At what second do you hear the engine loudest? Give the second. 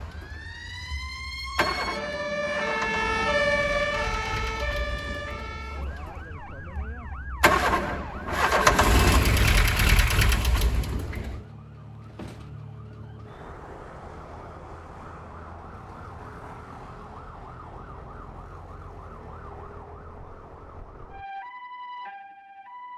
9 s.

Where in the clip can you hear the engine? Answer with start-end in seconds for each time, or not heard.
0.0-11.4.